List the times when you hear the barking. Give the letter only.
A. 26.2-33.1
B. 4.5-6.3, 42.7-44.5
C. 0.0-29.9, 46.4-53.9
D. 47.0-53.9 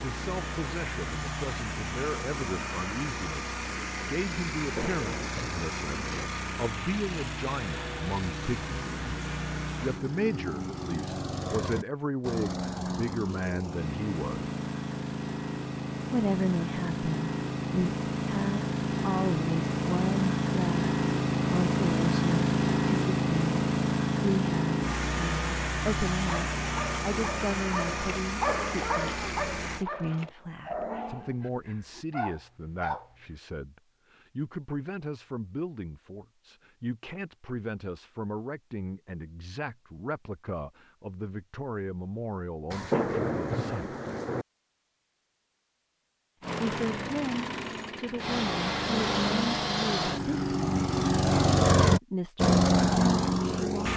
A.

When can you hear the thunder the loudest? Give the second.
43 s.